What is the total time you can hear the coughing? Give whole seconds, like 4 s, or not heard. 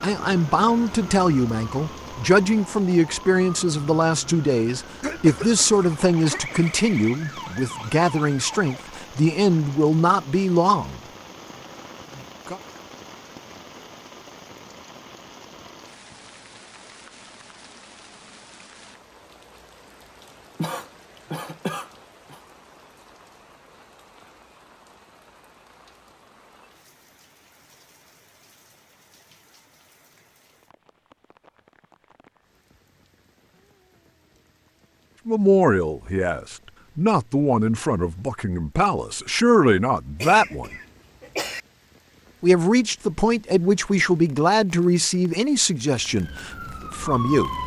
5 s.